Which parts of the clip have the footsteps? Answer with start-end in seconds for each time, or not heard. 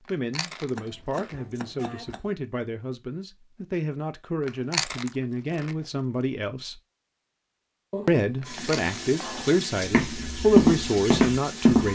9.8-11.9.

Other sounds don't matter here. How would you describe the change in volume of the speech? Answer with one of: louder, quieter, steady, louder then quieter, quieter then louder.
louder.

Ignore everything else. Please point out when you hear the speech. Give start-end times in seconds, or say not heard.
0.1-6.8, 8.1-11.9.